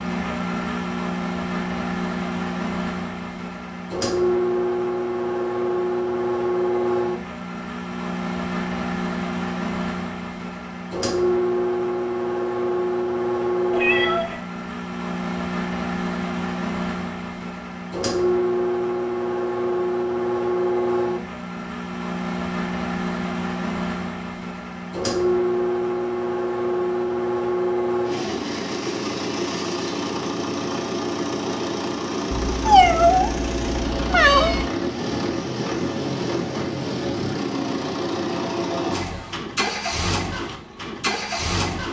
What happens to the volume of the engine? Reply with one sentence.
The loudness of the engine stays about the same.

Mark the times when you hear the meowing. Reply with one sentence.
The meowing can be heard from 13.7 to 14.4 s and from 32.3 to 34.6 s.